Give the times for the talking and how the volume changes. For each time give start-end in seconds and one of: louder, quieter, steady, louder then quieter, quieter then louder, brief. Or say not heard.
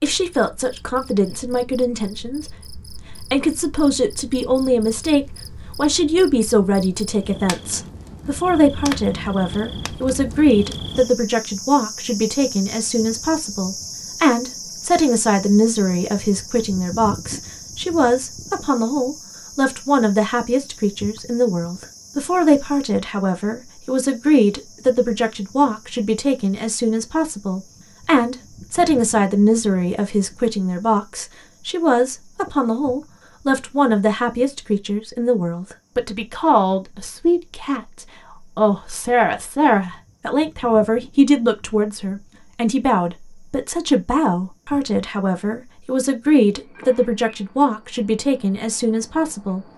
0.0-49.6 steady.